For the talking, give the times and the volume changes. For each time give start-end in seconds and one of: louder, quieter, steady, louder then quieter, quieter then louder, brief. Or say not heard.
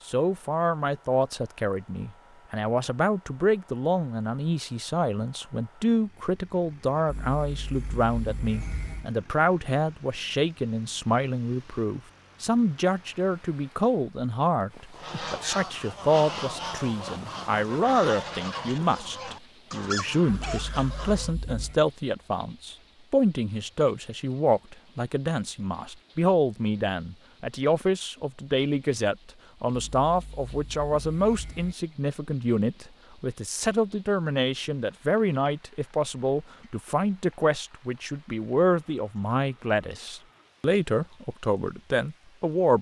0.1-42.7 steady.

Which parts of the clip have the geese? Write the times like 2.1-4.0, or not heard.
14.9-21.4.